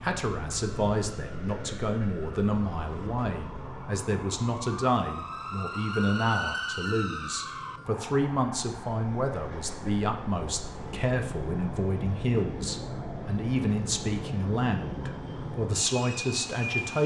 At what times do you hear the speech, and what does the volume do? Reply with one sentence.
You can hear the speech from 0.0 to 17.0 s, at a steady volume.